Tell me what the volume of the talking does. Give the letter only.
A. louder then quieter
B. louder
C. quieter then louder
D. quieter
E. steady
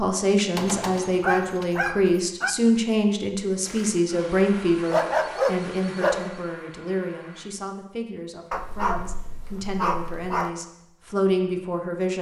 C.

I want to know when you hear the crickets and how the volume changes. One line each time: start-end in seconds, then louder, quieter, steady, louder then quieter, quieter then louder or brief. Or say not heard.
not heard.